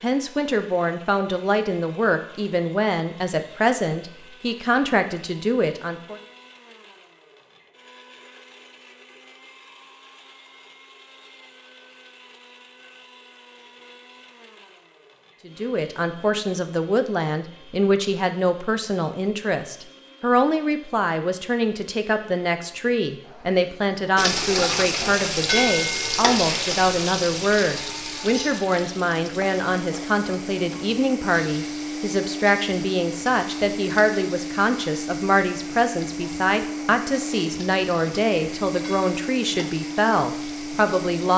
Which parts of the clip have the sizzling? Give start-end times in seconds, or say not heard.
24.1-41.2.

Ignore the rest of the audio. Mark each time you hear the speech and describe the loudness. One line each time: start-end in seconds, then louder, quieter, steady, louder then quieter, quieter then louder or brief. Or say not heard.
0.0-6.2 steady
15.4-41.3 steady.